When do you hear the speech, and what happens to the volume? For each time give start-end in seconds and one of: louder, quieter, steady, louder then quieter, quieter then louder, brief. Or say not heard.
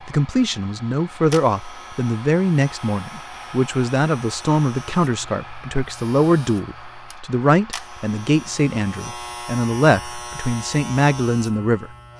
0.1-11.9 steady.